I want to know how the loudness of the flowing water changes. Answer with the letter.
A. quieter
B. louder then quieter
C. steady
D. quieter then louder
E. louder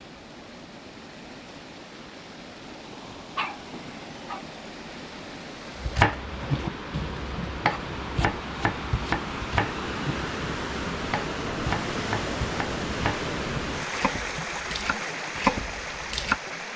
E.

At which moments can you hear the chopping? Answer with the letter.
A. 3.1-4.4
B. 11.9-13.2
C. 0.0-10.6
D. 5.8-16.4
D.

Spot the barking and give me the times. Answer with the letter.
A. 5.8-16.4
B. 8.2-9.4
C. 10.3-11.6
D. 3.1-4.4
D.